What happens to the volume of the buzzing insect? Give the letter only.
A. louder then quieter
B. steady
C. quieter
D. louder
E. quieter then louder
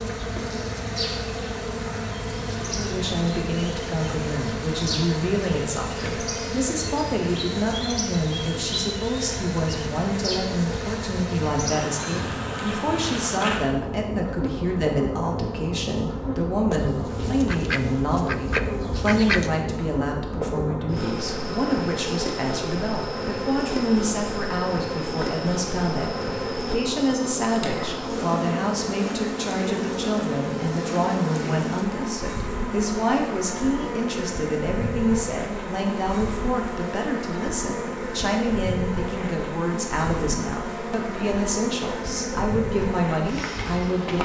B.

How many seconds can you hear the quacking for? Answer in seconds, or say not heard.
3 s.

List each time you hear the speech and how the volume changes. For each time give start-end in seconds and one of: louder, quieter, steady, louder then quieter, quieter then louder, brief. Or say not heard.
2.6-44.2 steady.